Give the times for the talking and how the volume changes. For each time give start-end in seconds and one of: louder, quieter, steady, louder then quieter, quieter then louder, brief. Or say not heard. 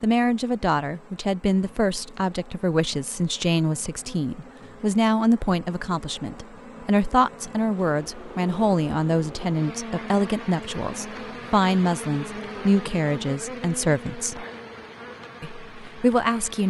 0.0-14.4 steady
15.4-16.6 brief.